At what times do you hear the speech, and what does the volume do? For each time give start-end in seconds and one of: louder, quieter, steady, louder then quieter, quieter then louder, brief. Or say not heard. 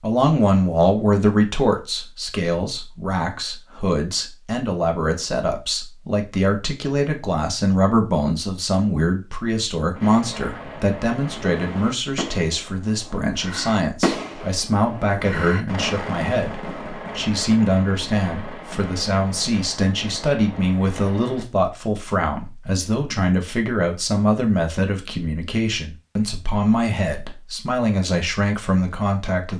0.0-29.5 steady.